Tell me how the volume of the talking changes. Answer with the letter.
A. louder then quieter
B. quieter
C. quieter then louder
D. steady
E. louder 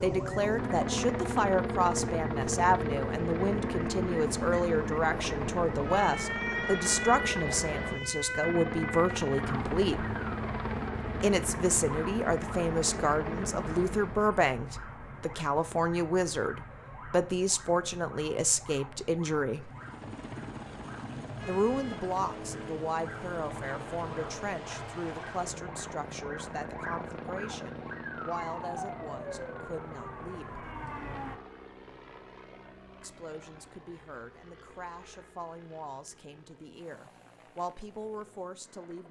B.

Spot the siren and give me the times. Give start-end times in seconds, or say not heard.
0.0-31.4.